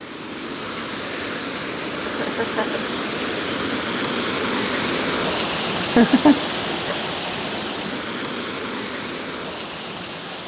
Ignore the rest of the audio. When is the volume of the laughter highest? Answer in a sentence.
The volume of the laughter peaks at 6 seconds.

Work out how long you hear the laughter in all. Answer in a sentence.
You can hear the laughter for 2 seconds altogether.